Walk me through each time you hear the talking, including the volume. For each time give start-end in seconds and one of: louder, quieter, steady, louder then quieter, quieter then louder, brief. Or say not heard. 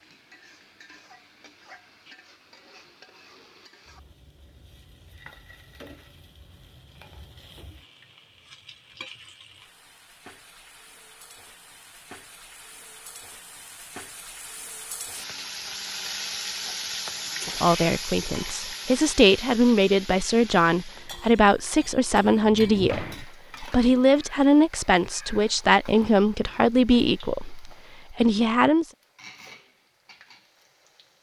17.4-28.9 steady.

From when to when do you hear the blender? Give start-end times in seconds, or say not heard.
not heard.